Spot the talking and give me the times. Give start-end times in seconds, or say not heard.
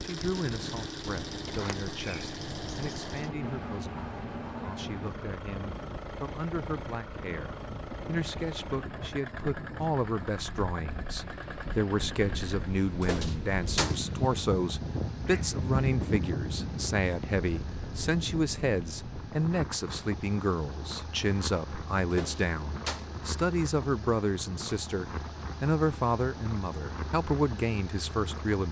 0.0-28.6.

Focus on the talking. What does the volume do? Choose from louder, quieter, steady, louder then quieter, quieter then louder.
louder.